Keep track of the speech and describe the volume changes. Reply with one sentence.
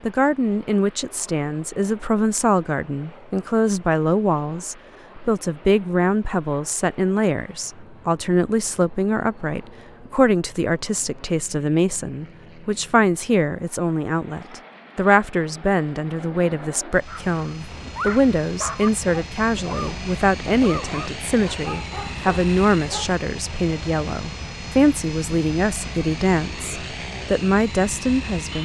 The loudness of the speech stays about the same.